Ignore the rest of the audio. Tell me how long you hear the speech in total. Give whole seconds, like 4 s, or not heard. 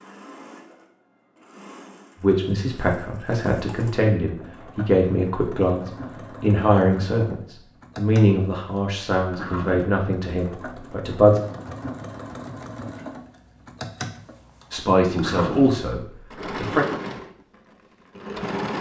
11 s.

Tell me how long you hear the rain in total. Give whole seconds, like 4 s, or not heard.
not heard.